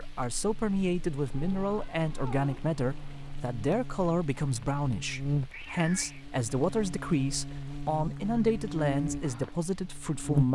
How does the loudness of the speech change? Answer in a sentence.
The volume of the speech stays about the same.